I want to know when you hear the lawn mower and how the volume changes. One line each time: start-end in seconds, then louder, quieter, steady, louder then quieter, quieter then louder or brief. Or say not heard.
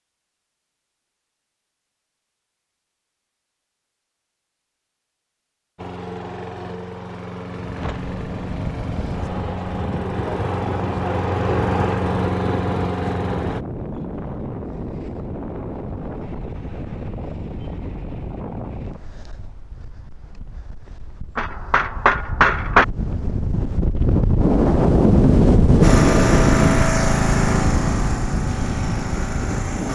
5.8-13.7 louder
25.8-29.9 quieter.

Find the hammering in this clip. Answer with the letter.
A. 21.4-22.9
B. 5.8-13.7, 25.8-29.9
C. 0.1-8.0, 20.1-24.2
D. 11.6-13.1
A.